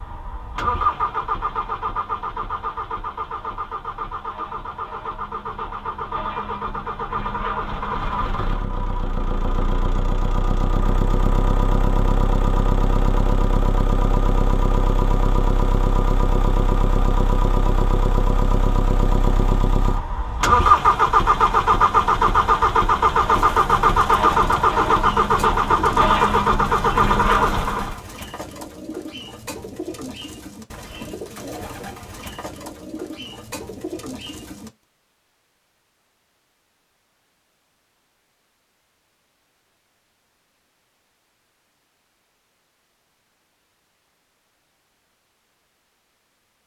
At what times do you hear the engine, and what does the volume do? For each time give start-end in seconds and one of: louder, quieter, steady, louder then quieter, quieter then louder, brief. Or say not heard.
0.0-28.0 louder.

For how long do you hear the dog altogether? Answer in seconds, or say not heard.
not heard.